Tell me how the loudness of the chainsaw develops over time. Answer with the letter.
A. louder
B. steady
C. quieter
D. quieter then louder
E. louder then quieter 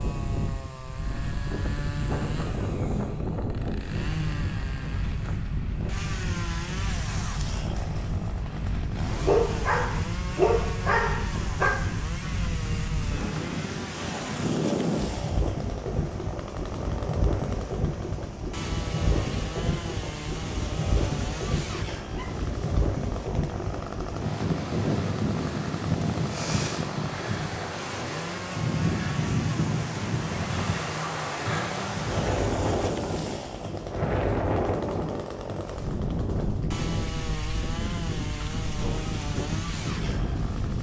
B.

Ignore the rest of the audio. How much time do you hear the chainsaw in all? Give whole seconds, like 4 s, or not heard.
41 s.